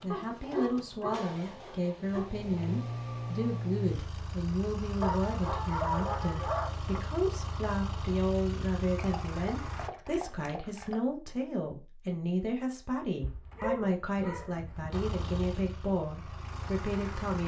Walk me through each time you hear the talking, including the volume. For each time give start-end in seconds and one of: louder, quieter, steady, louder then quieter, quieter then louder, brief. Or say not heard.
0.0-17.4 steady.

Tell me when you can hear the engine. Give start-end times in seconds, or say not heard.
0.0-9.9, 14.9-17.4.